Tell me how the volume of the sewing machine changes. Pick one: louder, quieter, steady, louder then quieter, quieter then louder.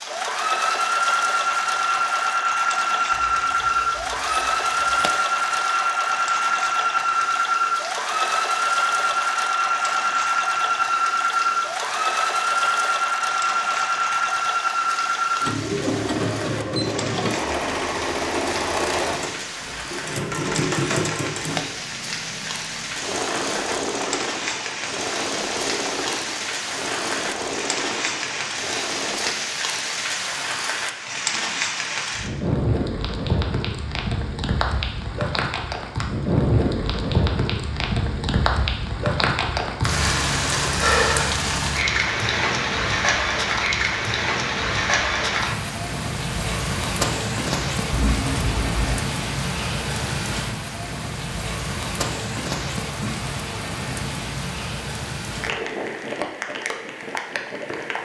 quieter.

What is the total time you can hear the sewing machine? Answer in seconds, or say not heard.
29 s.